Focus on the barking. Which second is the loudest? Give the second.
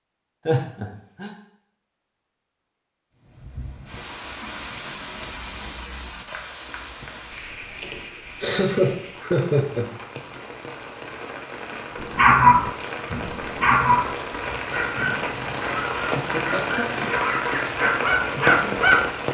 12 s.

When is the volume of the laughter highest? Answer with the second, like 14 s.
9 s.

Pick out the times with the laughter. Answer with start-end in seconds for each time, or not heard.
0.5-1.3, 7.8-9.9, 14.9-17.2.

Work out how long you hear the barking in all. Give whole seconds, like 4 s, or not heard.
7 s.